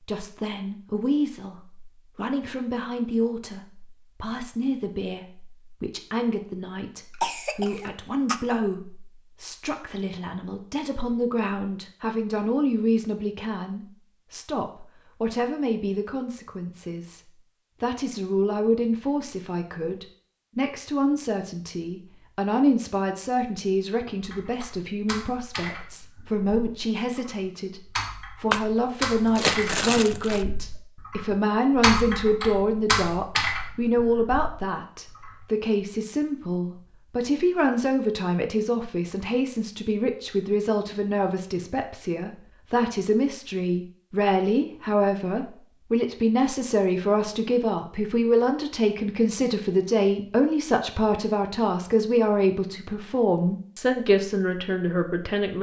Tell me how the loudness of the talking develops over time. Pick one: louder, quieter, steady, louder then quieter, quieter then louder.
louder.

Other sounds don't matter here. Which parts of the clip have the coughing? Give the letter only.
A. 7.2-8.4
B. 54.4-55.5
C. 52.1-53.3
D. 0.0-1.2
A.